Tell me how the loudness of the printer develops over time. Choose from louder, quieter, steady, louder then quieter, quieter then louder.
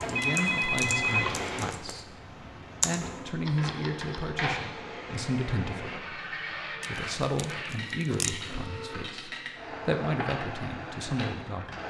steady.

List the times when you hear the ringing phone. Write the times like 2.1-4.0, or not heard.
0.1-2.0.